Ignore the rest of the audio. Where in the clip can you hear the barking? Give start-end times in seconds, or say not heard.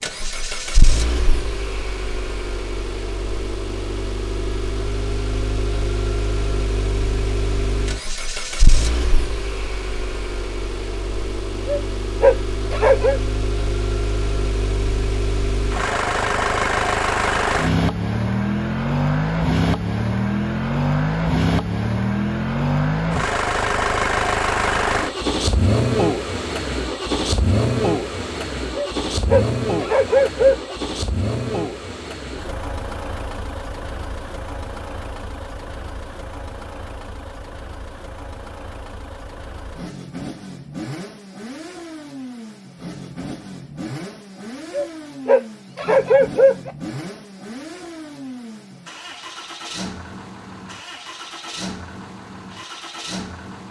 11.7-13.2, 28.8-30.8, 44.7-46.7.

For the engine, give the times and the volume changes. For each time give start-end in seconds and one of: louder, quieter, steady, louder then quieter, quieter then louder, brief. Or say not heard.
0.0-53.6 louder then quieter.